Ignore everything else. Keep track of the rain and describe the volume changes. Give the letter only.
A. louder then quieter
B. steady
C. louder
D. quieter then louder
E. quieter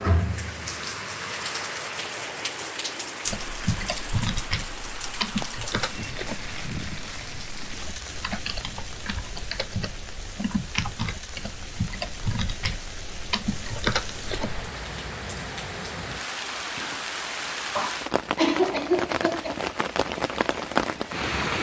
D.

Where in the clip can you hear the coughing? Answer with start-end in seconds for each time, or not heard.
17.8-19.6.